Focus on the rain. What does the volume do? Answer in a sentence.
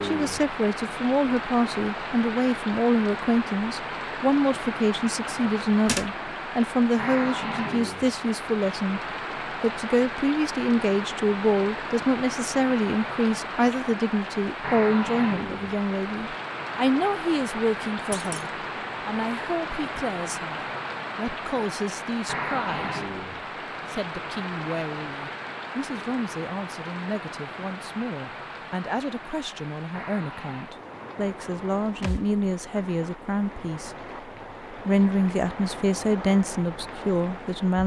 The volume of the rain goes down.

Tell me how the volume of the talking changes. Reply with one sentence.
The volume of the talking goes down, then up.